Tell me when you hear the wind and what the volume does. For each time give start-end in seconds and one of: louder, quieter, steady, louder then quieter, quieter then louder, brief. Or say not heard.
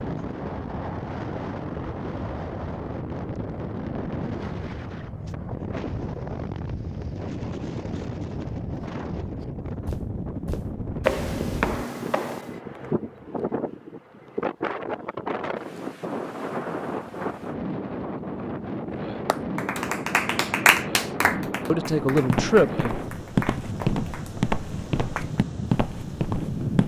0.0-26.8 steady.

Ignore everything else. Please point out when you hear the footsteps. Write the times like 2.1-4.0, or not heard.
9.8-12.6, 22.1-26.8.